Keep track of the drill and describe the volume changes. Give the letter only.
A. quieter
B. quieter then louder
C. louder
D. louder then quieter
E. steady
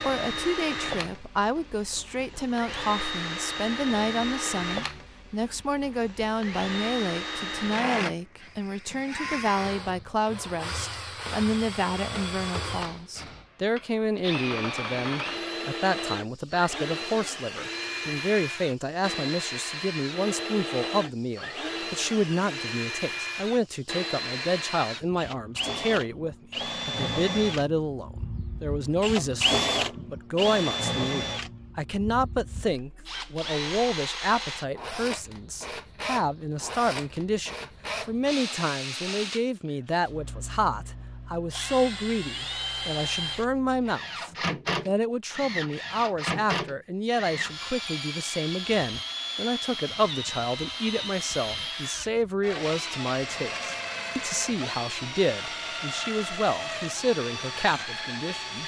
E.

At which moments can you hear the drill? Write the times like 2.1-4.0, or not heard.
0.0-58.6.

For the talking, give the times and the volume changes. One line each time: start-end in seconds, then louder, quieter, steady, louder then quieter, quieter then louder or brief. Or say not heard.
0.0-58.6 steady.